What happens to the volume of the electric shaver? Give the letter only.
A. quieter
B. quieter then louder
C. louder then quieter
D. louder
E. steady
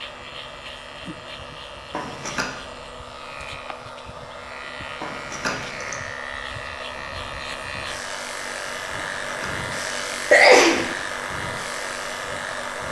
D.